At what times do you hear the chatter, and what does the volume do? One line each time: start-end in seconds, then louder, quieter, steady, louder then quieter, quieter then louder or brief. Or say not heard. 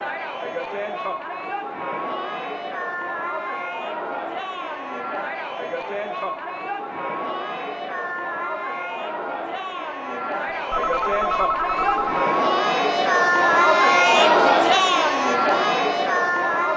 0.0-16.7 louder.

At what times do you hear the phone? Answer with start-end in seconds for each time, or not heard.
10.7-12.2.